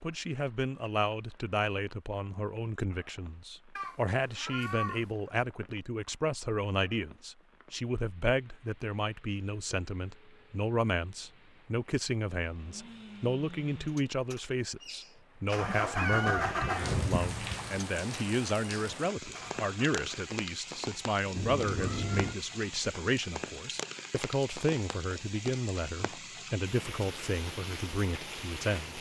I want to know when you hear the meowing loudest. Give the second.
16 s.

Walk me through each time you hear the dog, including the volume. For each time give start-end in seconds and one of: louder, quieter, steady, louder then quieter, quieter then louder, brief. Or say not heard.
not heard.